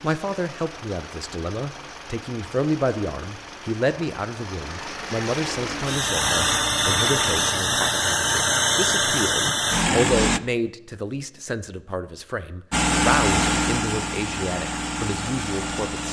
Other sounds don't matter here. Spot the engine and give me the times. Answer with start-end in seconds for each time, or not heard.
0.0-10.4, 12.7-16.0.